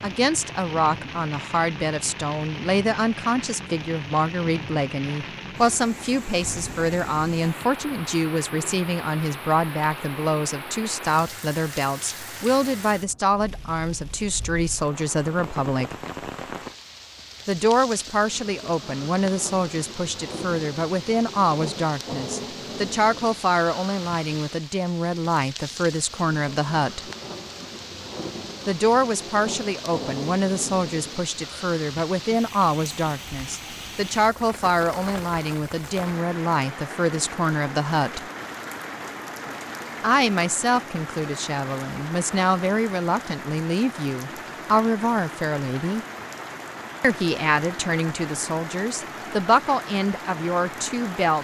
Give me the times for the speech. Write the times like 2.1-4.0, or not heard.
0.0-15.9, 17.4-27.0, 28.6-38.2, 40.0-46.0, 47.0-51.3.